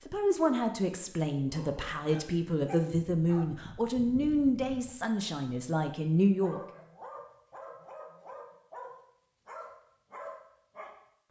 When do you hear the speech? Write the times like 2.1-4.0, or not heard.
0.1-6.6.